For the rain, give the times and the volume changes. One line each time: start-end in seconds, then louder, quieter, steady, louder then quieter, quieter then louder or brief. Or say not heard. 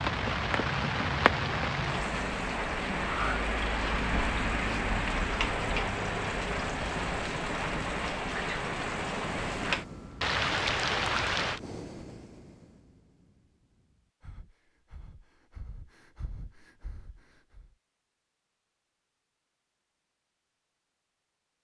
0.0-11.6 steady.